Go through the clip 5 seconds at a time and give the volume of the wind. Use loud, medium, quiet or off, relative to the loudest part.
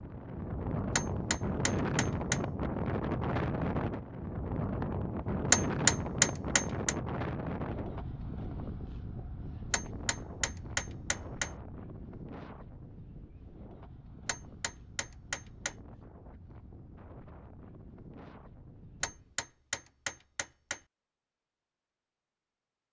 loud, loud, quiet, quiet, off.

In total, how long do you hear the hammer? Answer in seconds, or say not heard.
8 s.